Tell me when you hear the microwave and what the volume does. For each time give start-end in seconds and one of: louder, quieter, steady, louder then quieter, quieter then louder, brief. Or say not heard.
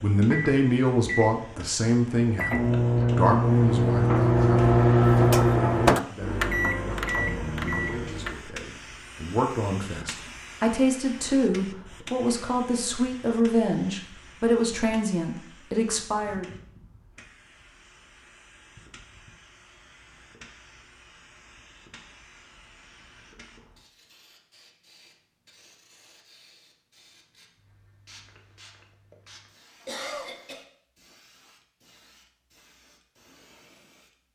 0.1-8.3 louder then quieter.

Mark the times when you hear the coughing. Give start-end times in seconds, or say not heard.
29.8-30.6.